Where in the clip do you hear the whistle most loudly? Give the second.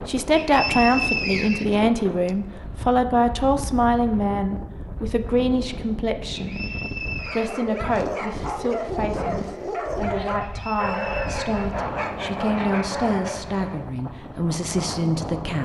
1 s.